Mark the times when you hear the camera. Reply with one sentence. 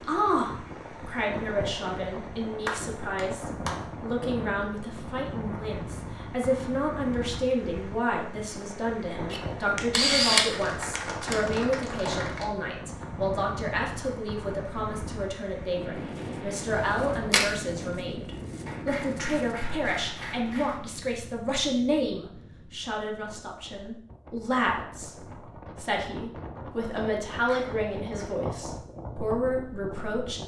The camera can be heard from 9.3 to 11.4 s and from 16.6 to 17.4 s.